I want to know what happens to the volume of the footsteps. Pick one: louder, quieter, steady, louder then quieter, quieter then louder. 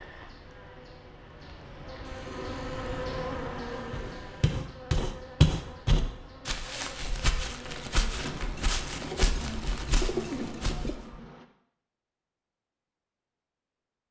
louder then quieter.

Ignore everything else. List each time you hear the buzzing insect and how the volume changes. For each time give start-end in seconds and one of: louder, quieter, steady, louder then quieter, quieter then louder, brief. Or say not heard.
0.0-11.4 louder then quieter.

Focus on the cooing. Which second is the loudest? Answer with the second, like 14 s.
10 s.